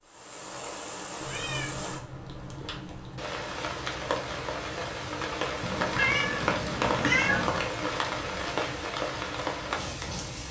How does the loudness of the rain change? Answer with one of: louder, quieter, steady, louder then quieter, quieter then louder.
louder.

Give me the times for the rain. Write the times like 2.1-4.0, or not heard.
0.0-10.4.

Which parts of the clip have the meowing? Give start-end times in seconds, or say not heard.
1.2-3.2, 5.6-7.7.